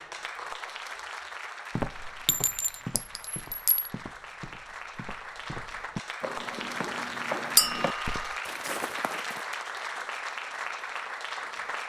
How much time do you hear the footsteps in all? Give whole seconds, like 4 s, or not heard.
8 s.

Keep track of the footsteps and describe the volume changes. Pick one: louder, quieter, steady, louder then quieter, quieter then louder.
quieter then louder.